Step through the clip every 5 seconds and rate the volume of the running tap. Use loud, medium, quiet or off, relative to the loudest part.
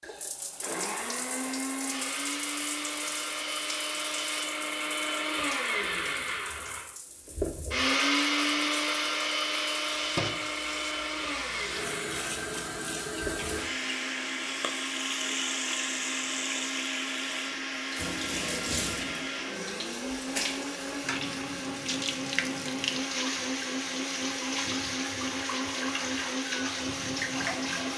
medium, quiet, loud, loud, loud, loud.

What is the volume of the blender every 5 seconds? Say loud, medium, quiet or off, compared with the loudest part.
medium, loud, medium, medium, medium, medium.